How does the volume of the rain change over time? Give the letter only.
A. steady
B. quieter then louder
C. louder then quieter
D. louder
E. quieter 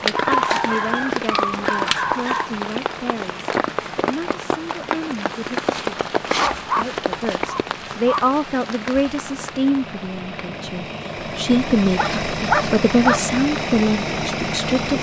E.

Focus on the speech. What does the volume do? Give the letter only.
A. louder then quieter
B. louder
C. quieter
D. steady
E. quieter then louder
B.